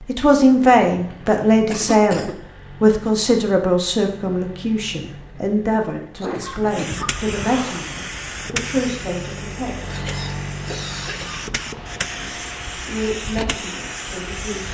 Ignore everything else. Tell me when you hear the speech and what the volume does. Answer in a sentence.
You can hear the speech from 0.0 to 9.9 s, getting quieter; and briefly from 12.2 to 14.6 s.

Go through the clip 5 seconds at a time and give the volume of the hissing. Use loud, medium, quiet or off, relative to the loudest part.
off, loud, loud.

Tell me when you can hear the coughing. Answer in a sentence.
The coughing can be heard from 1.7 to 2.4 s, from 6.2 to 8.0 s and from 9.9 to 11.4 s.